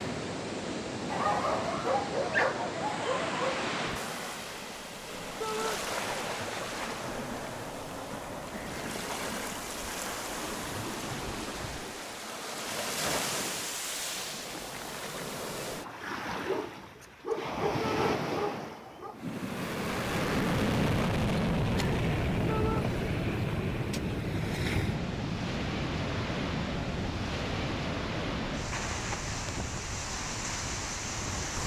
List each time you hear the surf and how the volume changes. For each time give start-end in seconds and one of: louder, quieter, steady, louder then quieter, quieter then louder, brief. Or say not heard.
0.0-31.6 steady.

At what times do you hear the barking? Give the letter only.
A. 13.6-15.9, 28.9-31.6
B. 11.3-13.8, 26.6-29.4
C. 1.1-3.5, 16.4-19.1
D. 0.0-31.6
C.